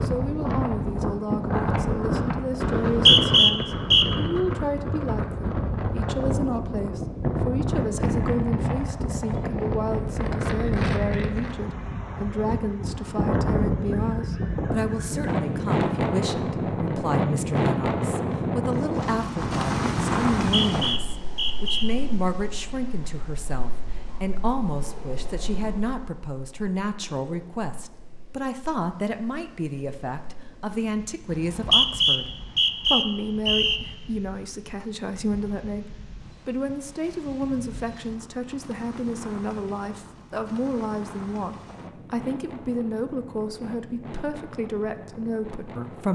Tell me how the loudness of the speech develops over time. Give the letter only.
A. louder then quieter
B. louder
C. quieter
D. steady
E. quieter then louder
D.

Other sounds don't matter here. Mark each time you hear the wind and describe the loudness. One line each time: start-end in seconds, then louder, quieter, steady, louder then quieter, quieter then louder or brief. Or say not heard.
0.0-46.1 quieter then louder.